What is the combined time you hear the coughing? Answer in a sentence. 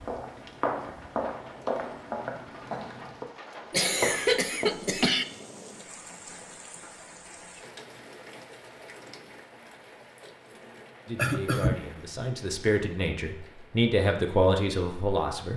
You can hear the coughing for 2 seconds altogether.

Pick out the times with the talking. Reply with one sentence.
You can hear the talking from 11.1 to 15.5 s.